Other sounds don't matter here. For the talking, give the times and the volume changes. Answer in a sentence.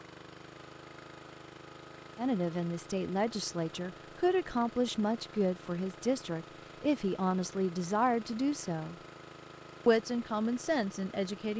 The talking can be heard from 2.1 to 8.9 s, at a steady volume; and briefly from 9.8 to 11.5 s.